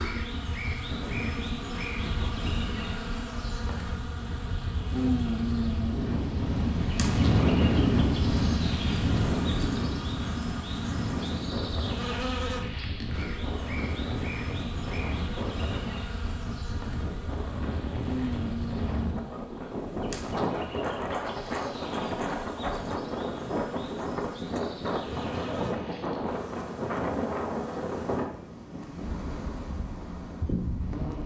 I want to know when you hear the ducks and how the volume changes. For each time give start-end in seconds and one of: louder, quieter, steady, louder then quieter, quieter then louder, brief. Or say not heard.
not heard.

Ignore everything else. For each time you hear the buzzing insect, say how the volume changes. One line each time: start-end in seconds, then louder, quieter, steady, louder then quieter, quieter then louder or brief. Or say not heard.
0.0-31.2 quieter.